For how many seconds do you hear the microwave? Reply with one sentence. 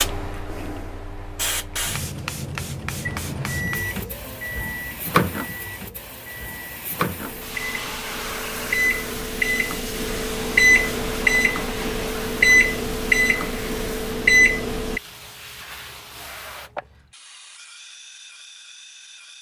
The microwave can be heard for 12 seconds in total.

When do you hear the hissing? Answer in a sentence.
The hissing can be heard from 0.0 to 19.3 s.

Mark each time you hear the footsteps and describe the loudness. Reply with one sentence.
The footsteps can't be heard in this clip.